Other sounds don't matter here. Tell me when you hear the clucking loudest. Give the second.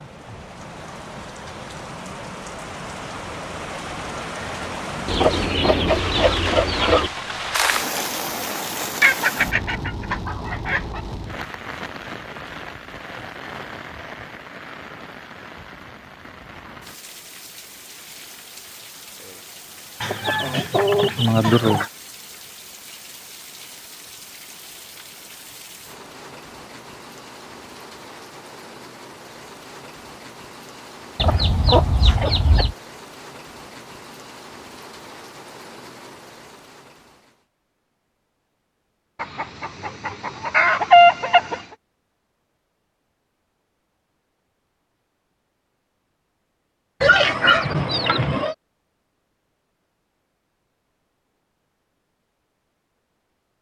41 s.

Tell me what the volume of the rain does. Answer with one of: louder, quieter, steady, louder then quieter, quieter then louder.
quieter.